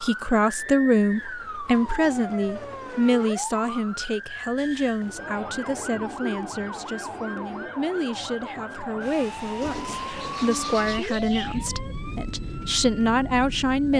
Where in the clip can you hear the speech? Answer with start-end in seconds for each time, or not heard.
0.0-13.9.